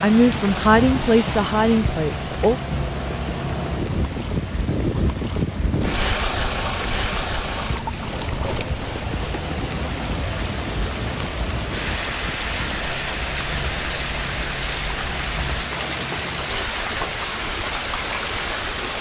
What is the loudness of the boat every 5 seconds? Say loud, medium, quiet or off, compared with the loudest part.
loud, loud, medium, medium.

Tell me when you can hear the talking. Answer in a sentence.
You can hear the talking from 0.0 to 2.6 s.